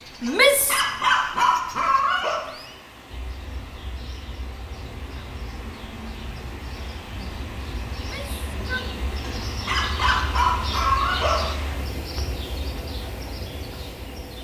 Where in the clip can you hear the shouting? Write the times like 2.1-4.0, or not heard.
0.2-0.8, 8.0-8.9.